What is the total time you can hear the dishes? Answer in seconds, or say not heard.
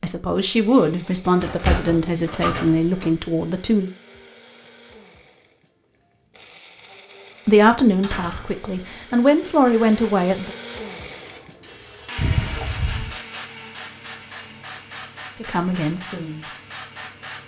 not heard.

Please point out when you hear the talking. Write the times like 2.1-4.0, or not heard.
0.0-3.9, 7.5-10.6, 15.3-16.5.